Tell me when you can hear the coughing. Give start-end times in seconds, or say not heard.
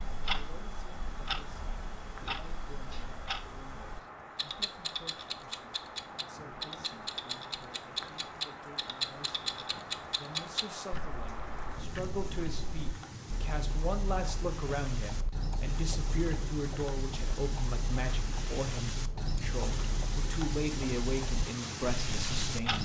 not heard.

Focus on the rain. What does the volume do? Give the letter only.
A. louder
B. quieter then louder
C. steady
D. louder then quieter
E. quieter
A.